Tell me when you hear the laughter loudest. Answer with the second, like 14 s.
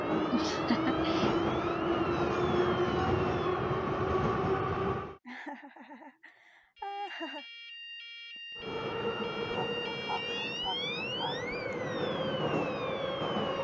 1 s.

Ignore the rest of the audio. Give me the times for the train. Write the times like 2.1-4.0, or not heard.
0.0-5.2, 8.6-13.5.